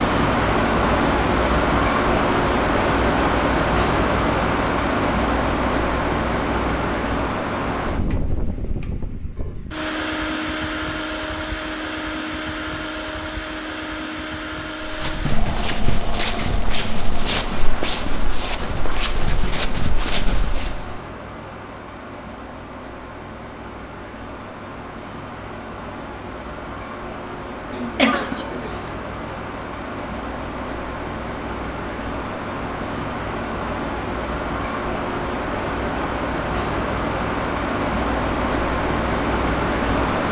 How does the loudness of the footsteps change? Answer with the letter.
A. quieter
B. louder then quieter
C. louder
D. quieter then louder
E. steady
E.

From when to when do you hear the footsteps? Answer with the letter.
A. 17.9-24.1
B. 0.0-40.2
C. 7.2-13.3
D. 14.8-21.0
D.